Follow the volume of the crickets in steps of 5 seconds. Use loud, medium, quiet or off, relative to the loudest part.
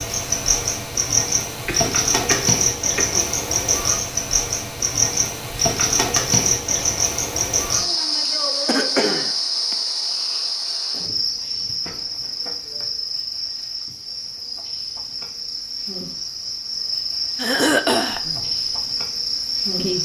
loud, loud, medium, medium.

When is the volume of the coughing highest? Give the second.
18 s.